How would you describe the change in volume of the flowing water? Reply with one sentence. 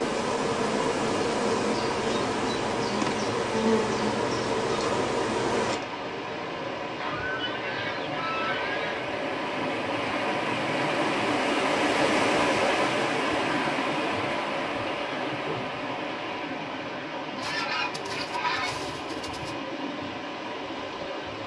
The volume of the flowing water goes up, then down.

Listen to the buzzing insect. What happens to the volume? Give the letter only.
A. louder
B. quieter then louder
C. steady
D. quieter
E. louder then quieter
D.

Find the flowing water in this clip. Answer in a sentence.
The flowing water can be heard from 0.0 to 21.4 s.